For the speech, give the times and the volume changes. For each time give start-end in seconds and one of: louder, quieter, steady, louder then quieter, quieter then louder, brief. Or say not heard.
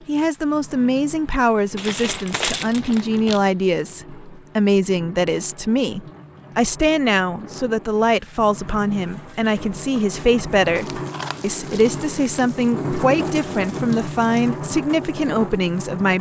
0.1-16.1 steady.